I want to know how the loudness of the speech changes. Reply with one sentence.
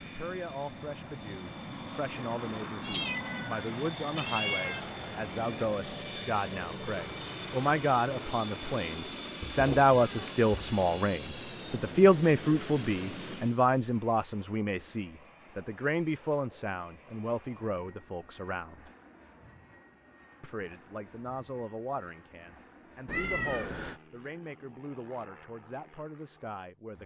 The volume of the speech goes up, then down.